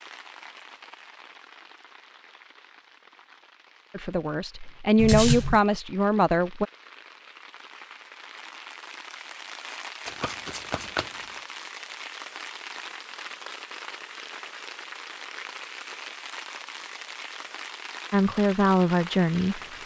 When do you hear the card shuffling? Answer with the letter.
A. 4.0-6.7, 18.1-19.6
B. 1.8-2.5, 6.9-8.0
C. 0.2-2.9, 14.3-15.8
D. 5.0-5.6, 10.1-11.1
D.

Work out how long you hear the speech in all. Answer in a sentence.
The speech can be heard for 4 seconds in total.